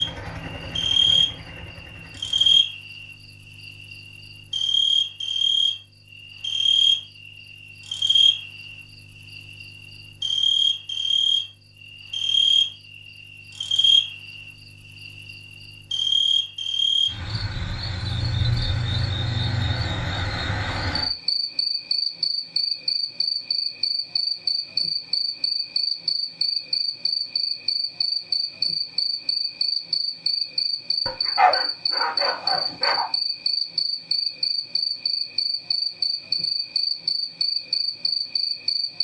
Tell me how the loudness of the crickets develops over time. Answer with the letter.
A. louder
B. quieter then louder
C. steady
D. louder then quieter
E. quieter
C.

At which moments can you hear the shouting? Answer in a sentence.
The shouting can't be heard in this clip.